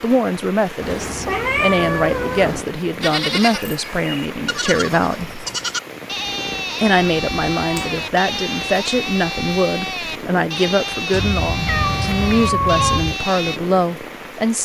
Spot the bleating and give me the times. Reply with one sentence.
You can hear the bleating from 3.0 to 13.6 s.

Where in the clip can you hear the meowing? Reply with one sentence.
You can hear the meowing from 0.8 to 2.6 s, from 7.0 to 8.1 s and from 11.1 to 13.2 s.